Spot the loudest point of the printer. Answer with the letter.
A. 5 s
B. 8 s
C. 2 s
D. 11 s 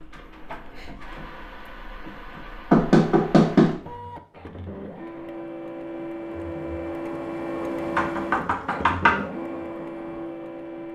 B.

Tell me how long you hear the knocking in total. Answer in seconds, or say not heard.
2 s.